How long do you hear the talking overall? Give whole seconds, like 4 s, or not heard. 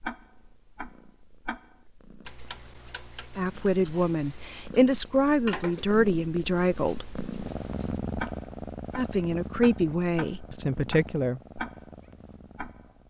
6 s.